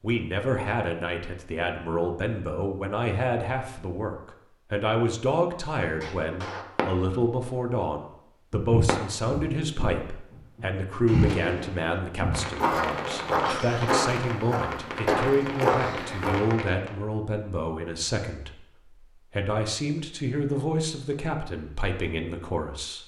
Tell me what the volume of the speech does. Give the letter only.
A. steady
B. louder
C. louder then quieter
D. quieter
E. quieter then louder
A.